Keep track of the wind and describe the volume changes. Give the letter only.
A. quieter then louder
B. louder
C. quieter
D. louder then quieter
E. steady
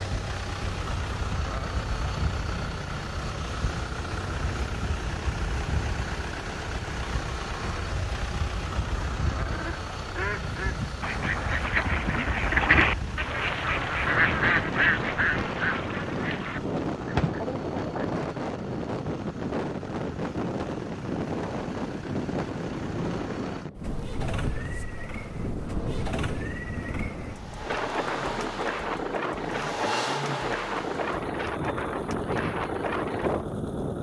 B.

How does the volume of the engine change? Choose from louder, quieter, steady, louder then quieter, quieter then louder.
quieter then louder.